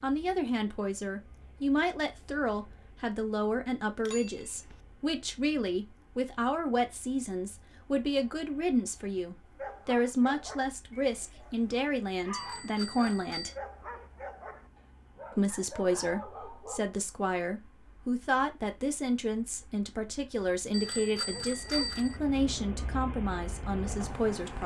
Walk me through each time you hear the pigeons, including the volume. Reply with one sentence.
You can't hear the pigeons here.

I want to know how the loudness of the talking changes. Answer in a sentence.
The volume of the talking stays about the same.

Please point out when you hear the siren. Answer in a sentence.
The siren can't be heard in this clip.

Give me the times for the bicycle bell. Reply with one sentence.
The bicycle bell can be heard from 4.0 to 4.8 s, from 12.3 to 13.6 s and from 20.7 to 22.2 s.